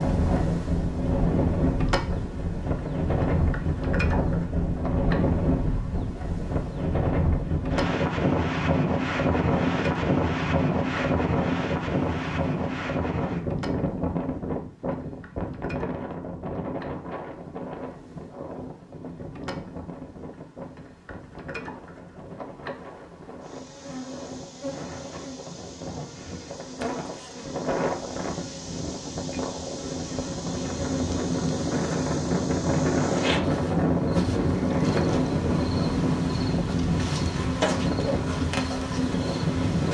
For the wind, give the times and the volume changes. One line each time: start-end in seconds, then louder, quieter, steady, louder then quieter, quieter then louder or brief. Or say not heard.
0.0-39.9 quieter then louder.